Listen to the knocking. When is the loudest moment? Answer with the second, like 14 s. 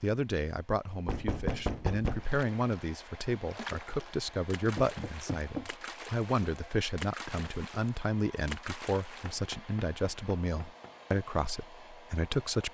2 s.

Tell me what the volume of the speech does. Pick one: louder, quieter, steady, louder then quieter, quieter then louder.
steady.